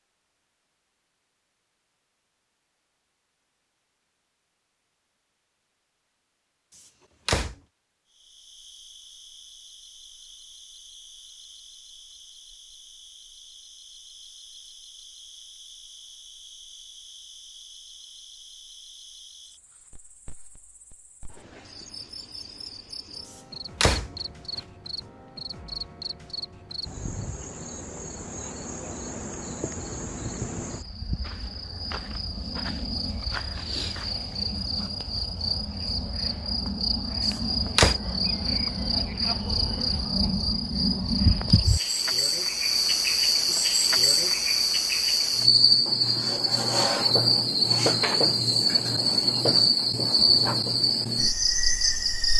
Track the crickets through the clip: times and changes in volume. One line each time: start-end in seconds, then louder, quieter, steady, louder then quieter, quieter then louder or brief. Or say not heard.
8.1-52.3 louder.